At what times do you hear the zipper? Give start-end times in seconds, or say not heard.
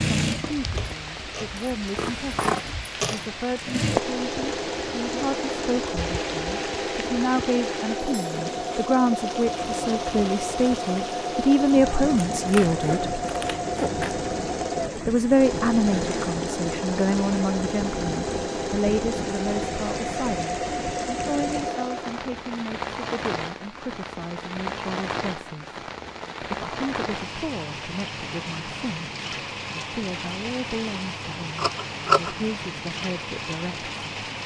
not heard.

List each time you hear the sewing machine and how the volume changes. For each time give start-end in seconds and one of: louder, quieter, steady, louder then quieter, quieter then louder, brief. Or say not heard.
0.0-22.3 steady.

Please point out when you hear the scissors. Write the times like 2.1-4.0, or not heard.
1.9-2.6, 12.3-14.2, 31.6-32.4.